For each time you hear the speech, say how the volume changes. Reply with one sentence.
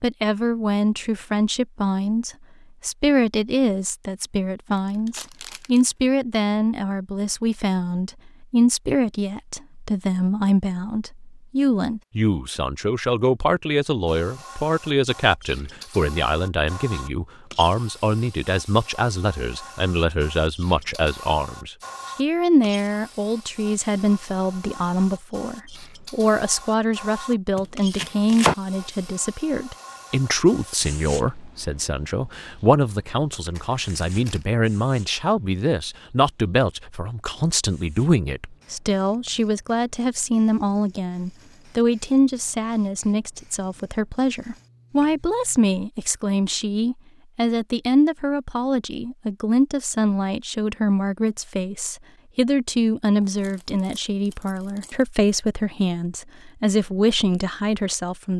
You can hear the speech from 0.0 to 58.3 s, at a steady volume.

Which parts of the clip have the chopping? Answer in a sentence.
You can hear the chopping from 27.6 to 28.6 s.